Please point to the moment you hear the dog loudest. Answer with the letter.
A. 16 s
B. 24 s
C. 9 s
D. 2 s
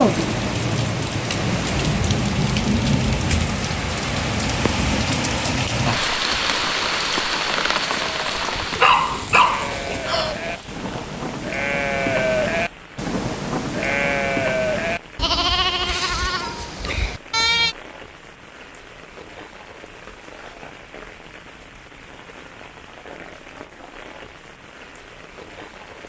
C.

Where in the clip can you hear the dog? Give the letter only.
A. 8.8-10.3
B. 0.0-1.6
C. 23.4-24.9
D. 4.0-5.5
A.